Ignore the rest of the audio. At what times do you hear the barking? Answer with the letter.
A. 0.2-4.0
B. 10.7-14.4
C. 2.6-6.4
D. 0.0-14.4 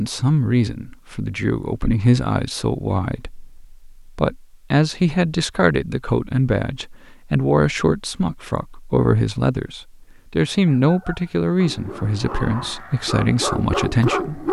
B.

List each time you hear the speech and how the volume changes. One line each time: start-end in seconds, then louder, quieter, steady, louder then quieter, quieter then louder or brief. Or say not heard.
0.0-14.4 steady.